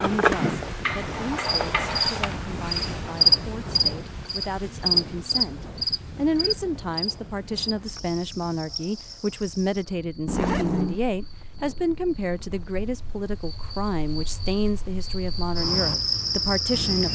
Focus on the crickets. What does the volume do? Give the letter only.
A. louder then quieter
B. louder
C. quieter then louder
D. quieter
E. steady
C.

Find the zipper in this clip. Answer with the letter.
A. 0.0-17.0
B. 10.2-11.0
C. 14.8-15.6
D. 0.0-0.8
B.